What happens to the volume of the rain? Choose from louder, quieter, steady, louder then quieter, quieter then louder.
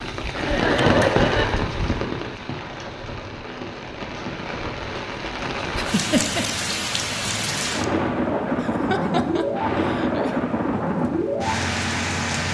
quieter then louder.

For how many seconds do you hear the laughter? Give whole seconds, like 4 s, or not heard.
4 s.